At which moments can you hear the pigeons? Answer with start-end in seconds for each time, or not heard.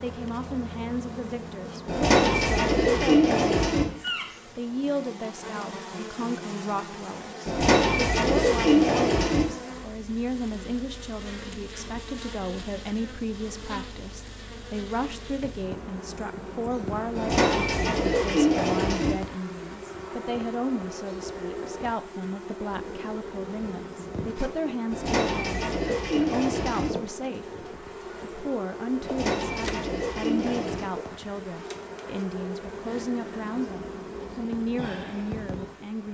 1.9-3.9, 7.5-9.4, 17.1-19.1, 24.9-26.9, 29.0-30.9.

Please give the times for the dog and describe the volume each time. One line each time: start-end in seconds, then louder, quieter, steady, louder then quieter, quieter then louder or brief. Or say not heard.
not heard.